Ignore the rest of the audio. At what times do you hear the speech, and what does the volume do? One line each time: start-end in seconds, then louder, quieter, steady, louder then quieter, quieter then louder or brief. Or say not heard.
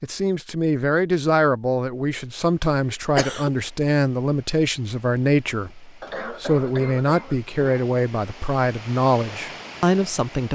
0.0-10.5 steady.